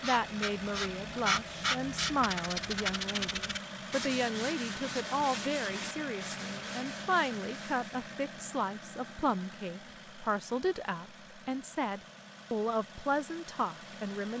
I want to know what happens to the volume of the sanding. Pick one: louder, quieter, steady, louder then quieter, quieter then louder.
quieter.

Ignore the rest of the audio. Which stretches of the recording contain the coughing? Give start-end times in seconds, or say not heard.
not heard.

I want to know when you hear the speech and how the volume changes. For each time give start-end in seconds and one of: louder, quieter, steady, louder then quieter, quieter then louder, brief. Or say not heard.
0.0-14.3 steady.